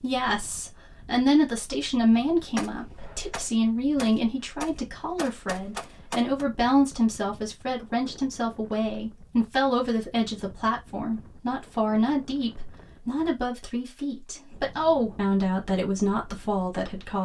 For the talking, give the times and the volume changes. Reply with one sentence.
You can hear the talking from 0.0 to 17.2 s, at a steady volume.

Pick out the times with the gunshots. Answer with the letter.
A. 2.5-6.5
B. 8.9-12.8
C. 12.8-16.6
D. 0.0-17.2
A.